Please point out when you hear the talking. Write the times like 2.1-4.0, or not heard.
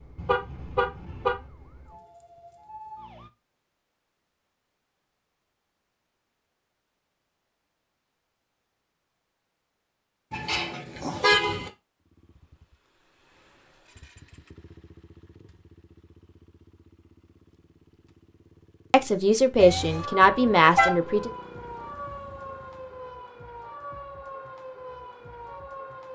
18.9-21.3.